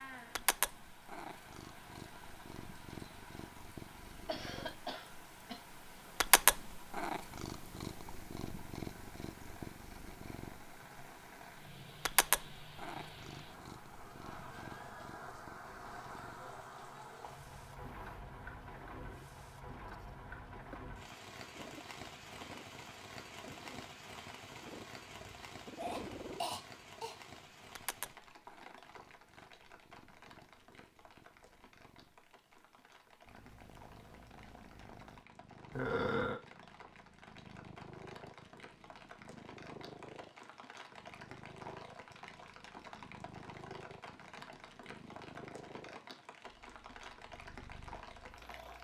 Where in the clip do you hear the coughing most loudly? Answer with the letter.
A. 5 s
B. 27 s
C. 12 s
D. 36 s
D.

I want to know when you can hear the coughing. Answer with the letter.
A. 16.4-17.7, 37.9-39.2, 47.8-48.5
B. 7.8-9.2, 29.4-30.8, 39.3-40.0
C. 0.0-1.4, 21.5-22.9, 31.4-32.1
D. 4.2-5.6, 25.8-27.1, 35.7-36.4
D.